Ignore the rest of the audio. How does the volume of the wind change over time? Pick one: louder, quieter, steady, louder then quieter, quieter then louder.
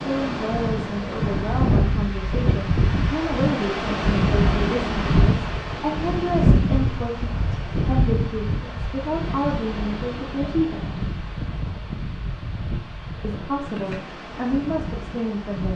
quieter.